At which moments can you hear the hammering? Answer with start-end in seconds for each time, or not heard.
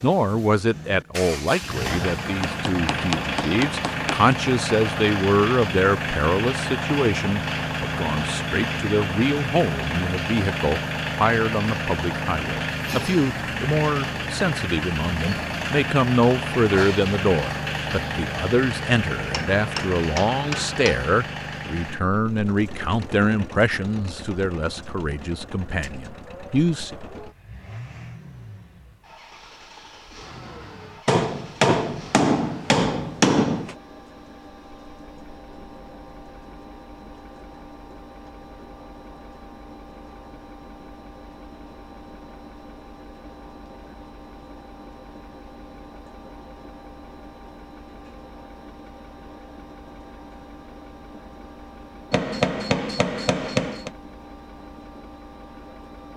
2.4-4.3, 19.3-21.1, 31.1-33.8, 52.1-53.9.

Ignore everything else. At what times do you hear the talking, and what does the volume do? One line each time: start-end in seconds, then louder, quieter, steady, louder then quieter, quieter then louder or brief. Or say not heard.
0.0-26.9 steady.